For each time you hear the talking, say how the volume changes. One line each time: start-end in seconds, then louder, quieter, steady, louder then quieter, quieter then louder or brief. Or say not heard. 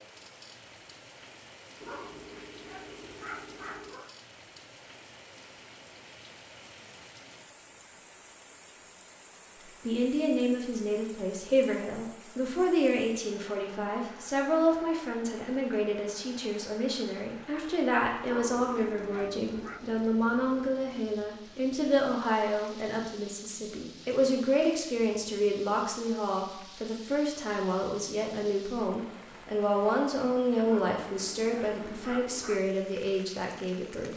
9.7-34.1 steady.